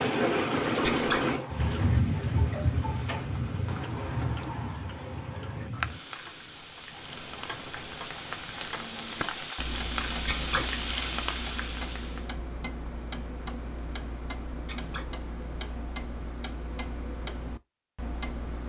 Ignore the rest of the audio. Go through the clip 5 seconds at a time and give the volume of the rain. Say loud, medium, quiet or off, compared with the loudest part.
loud, medium, medium, off.